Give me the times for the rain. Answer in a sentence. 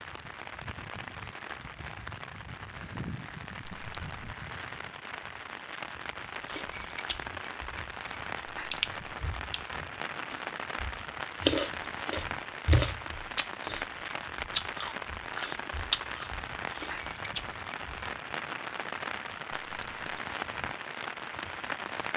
You can hear the rain from 0.0 to 22.1 s.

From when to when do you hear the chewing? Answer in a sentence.
The chewing can be heard from 6.5 to 18.1 s.